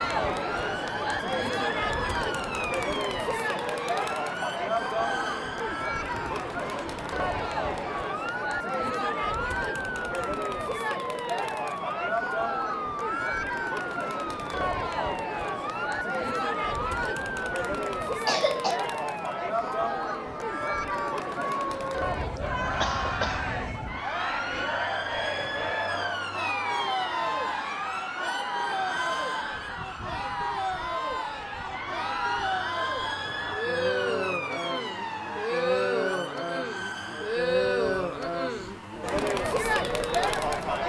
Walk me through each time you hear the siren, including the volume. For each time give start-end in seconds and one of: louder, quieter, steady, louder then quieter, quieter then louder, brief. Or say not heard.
0.0-40.8 steady.